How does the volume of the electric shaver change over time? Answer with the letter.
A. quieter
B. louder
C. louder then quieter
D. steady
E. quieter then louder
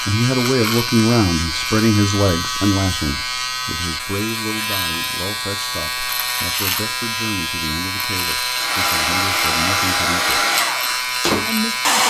D.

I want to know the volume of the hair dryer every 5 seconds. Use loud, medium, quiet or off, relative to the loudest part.
off, loud, loud.